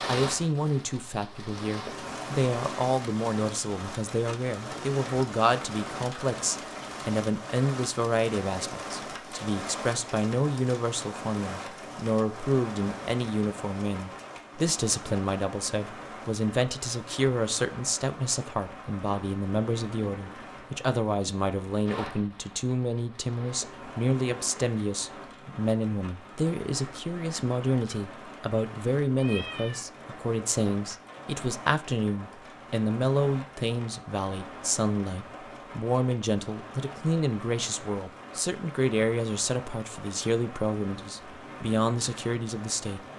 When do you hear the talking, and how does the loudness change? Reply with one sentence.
The talking can be heard from 0.1 to 43.1 s, at a steady volume.